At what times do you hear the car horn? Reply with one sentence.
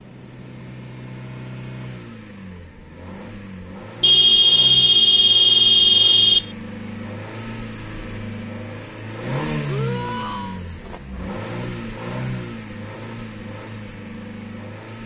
The car horn can be heard from 4.0 to 6.5 s.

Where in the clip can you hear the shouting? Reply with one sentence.
The shouting can be heard from 9.7 to 10.6 s.